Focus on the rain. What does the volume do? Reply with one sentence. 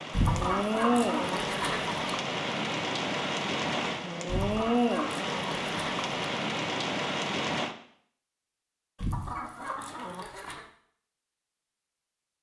The volume of the rain stays about the same.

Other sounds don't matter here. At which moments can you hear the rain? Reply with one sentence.
The rain can be heard from 0.0 to 7.8 s.